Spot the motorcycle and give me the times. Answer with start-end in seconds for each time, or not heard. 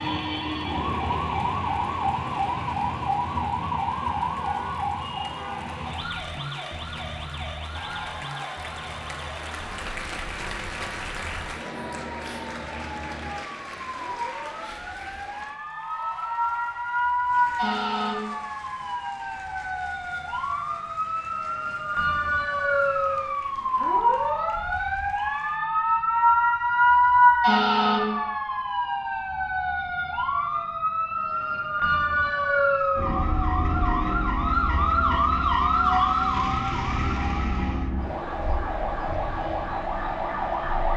not heard.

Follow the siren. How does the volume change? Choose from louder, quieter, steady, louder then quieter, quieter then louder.
quieter then louder.